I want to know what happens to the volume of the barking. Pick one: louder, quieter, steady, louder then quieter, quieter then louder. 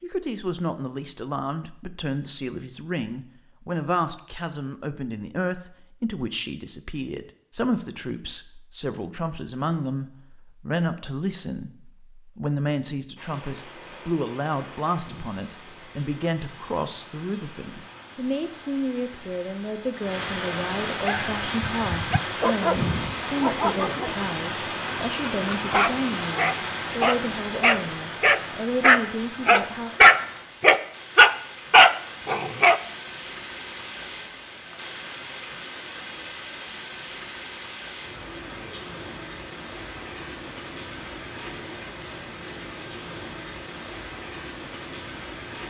louder.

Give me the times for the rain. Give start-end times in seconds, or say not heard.
13.2-45.6.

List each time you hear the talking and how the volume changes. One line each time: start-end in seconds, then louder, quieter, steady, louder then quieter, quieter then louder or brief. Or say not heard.
0.0-29.9 steady.